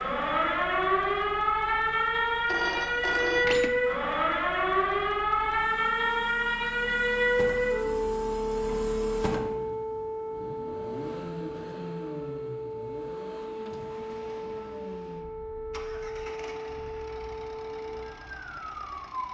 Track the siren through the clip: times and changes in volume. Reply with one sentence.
You can hear the siren from 0.0 to 19.2 s, getting quieter.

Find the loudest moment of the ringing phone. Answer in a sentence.
The volume of the ringing phone peaks at 3 seconds.